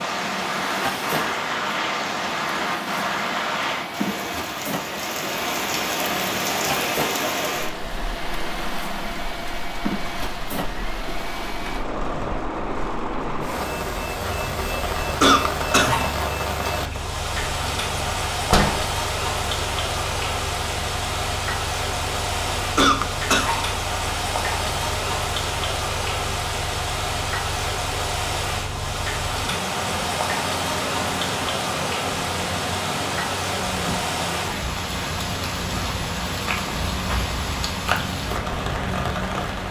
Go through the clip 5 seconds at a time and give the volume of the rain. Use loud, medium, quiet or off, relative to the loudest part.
loud, loud, medium, loud, loud, loud, loud, loud.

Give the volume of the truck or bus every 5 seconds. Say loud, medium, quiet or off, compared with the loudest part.
loud, loud, loud, medium, medium, medium, loud, loud.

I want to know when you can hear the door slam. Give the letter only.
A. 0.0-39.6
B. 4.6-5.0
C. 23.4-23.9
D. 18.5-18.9
D.